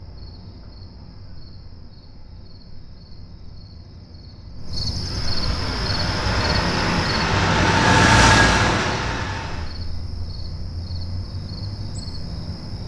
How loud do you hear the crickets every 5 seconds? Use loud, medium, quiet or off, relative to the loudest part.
medium, loud, medium.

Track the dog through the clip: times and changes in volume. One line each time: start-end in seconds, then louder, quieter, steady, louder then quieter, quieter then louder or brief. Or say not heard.
not heard.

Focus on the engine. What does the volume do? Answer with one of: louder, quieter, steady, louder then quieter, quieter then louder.
louder then quieter.